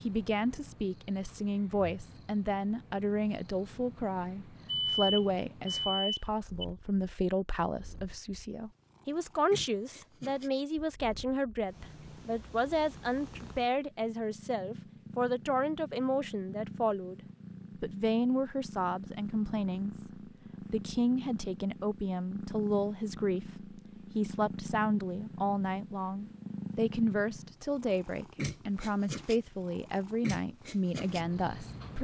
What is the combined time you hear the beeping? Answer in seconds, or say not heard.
2 s.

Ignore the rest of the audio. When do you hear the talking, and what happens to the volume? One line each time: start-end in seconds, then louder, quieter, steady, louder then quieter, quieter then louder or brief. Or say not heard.
0.0-17.2 steady
17.8-31.9 steady.